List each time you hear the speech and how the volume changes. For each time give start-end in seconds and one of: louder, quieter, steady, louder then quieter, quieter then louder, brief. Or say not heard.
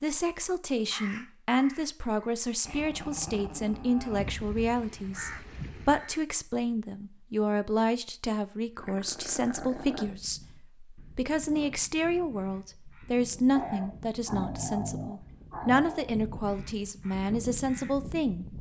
0.0-18.5 steady.